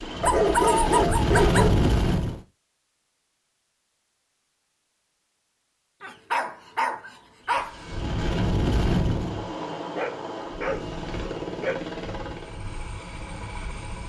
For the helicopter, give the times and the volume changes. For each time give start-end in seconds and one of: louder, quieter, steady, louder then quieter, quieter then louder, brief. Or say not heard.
0.0-2.4 brief
7.5-14.0 quieter.